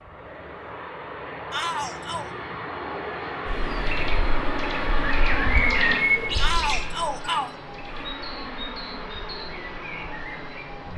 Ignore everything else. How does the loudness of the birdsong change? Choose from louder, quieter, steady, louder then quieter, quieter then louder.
louder then quieter.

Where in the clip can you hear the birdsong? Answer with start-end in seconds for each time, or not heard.
3.5-10.9.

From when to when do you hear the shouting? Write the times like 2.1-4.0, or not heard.
1.5-2.3, 6.3-7.5.